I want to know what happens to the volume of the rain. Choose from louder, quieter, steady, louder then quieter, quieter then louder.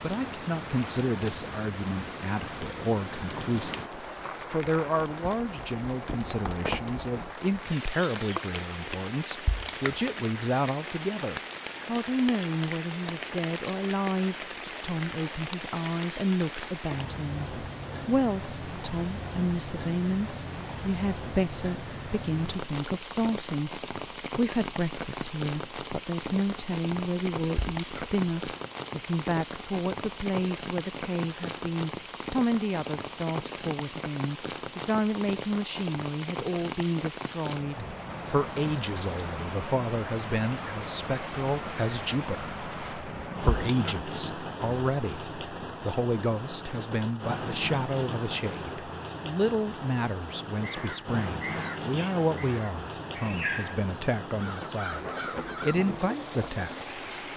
steady.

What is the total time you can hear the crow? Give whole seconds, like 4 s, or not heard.
5 s.